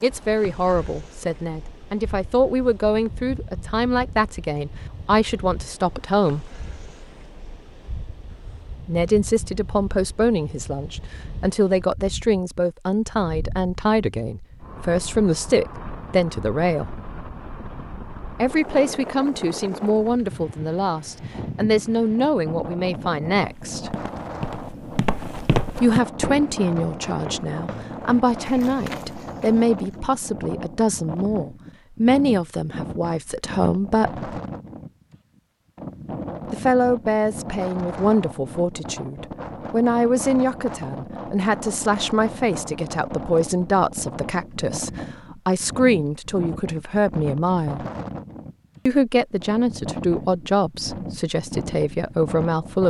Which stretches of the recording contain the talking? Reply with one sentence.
You can hear the talking from 0.0 to 6.5 s, from 8.8 to 16.9 s, from 18.4 to 23.9 s, from 25.8 to 34.2 s, from 36.5 to 47.9 s and from 48.9 to 52.8 s.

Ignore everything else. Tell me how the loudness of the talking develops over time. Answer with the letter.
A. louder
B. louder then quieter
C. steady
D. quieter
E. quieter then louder
C.